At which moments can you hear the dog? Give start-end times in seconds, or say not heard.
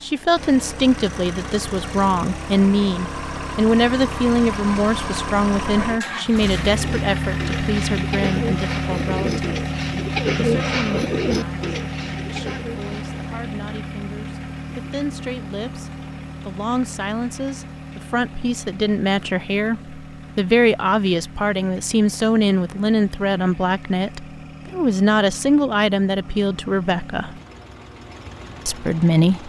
not heard.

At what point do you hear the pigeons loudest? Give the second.
10 s.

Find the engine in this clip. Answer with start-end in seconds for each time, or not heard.
0.0-29.4.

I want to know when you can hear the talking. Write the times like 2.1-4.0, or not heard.
0.0-9.4, 10.3-27.4, 28.6-29.4.